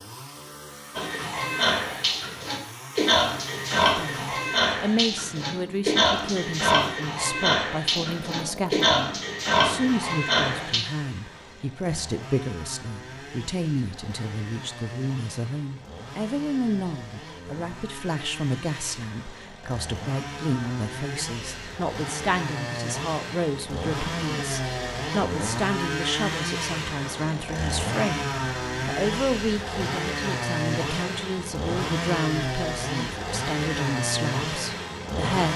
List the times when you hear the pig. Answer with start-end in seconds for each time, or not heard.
0.9-10.8.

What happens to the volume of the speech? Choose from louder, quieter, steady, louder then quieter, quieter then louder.
steady.